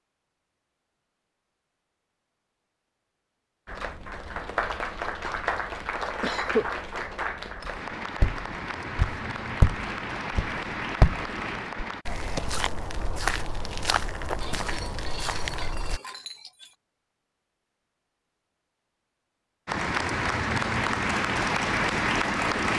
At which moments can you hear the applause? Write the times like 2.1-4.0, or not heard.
3.6-12.1, 19.6-22.7.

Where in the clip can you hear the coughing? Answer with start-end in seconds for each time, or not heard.
6.2-6.7.